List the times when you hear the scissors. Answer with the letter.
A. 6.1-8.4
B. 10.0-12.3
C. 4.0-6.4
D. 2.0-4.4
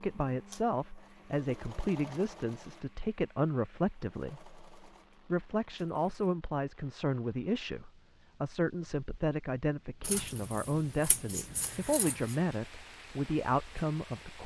B.